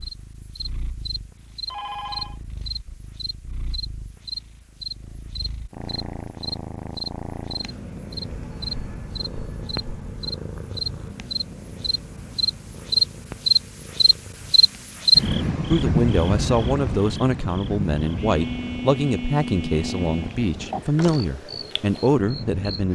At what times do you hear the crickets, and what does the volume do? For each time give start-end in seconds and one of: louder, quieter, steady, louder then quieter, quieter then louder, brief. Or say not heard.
0.0-22.9 louder then quieter.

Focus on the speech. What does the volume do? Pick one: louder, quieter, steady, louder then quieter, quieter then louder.
steady.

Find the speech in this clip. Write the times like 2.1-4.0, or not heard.
15.7-22.9.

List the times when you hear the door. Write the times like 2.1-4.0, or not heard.
not heard.